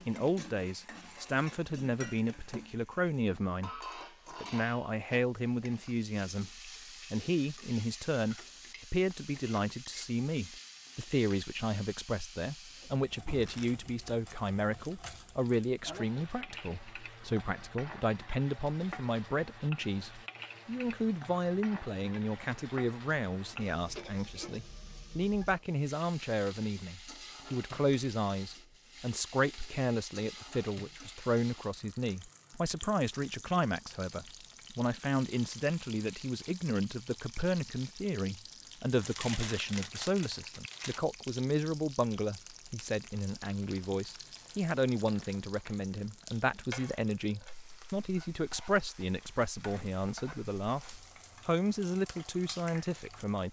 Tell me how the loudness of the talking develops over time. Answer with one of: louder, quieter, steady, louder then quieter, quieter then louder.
steady.